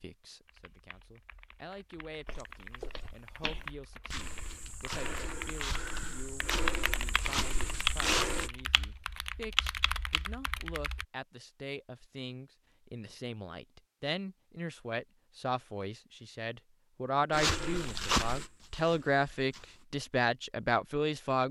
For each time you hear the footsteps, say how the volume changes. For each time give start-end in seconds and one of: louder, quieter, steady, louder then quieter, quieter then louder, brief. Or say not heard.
2.2-8.5 louder
17.3-19.9 brief.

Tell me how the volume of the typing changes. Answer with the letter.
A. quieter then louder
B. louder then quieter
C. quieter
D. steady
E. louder
E.